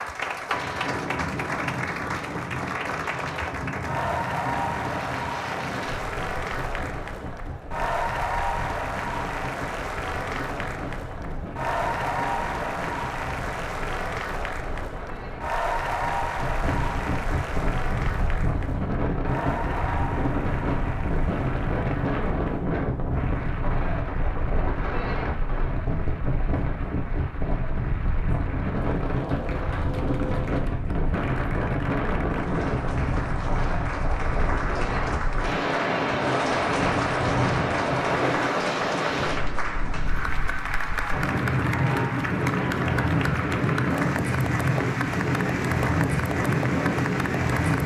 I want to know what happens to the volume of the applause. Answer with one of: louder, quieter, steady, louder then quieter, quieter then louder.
quieter then louder.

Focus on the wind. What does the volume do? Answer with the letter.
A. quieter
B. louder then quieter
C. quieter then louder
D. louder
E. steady
D.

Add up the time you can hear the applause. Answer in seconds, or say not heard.
48 s.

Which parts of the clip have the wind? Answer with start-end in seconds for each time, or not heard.
0.0-47.8.